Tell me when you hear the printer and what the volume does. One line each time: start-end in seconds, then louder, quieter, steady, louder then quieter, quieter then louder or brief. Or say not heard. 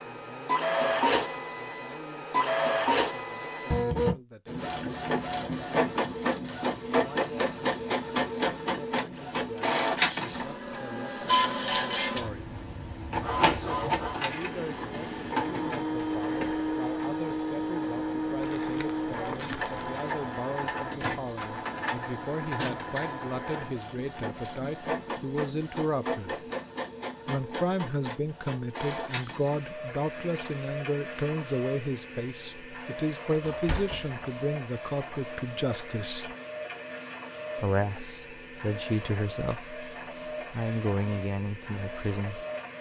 0.0-42.7 quieter.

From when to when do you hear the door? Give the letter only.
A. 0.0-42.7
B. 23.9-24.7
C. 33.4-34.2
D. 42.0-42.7
C.